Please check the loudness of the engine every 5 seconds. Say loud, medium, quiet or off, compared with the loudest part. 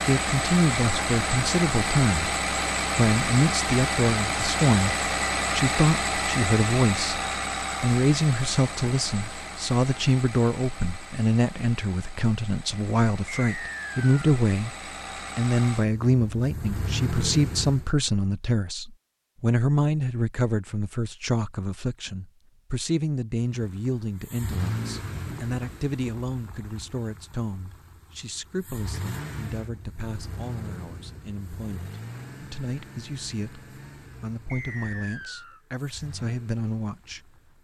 loud, loud, quiet, medium, medium, quiet, quiet, quiet.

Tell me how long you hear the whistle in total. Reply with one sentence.
The whistle can be heard for 2 seconds in total.